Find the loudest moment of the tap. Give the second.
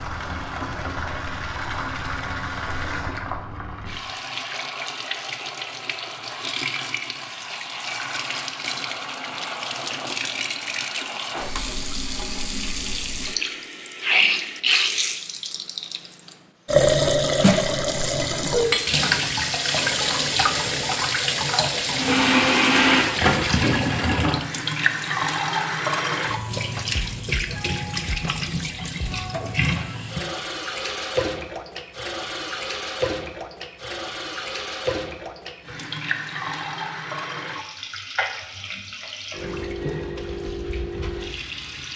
17 s.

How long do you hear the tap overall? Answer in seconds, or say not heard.
42 s.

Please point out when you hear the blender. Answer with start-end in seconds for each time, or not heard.
21.9-23.6.